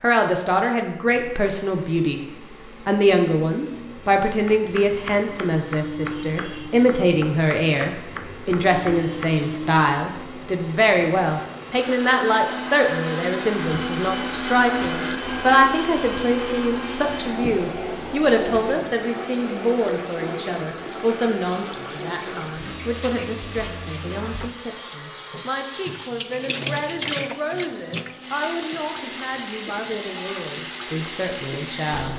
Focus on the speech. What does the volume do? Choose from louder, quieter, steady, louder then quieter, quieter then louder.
quieter.